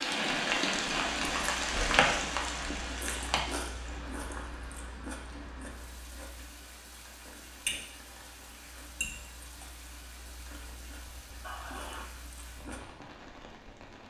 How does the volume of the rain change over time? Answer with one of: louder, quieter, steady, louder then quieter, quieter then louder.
quieter.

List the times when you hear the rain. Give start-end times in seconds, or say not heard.
0.0-14.0.